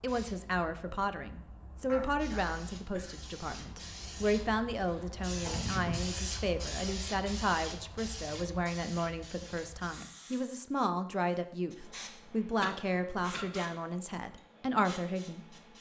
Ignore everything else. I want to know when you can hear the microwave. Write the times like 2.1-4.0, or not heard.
not heard.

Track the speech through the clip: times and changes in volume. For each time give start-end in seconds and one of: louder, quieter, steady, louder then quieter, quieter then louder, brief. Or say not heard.
0.0-15.4 steady.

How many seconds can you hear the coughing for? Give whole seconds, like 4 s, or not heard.
3 s.